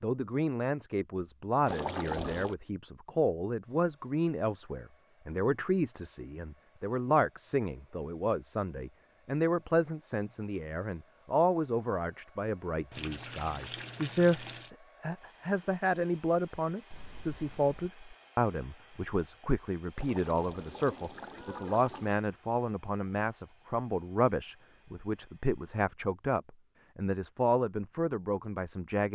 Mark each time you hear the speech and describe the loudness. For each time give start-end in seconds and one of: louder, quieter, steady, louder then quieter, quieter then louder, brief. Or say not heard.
0.0-29.1 steady.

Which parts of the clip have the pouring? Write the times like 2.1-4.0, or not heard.
1.6-2.5, 12.9-14.7, 19.9-22.2.